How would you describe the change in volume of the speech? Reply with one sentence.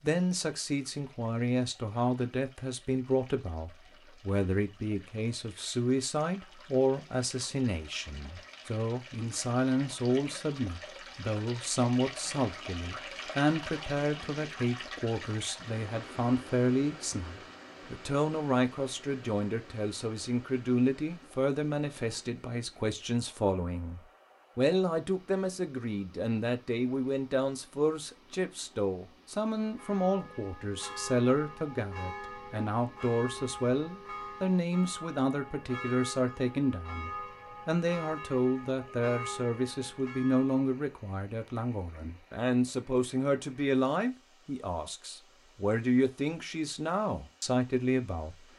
The loudness of the speech stays about the same.